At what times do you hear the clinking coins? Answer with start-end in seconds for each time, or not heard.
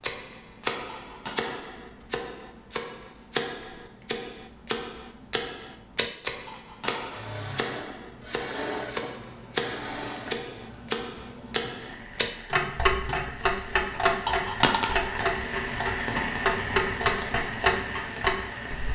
0.8-1.6, 6.5-7.3, 14.2-15.1.